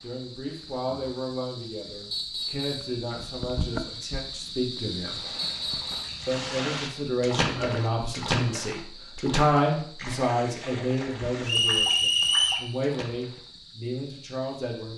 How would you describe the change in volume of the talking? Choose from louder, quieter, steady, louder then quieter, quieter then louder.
louder then quieter.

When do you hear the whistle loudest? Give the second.
12 s.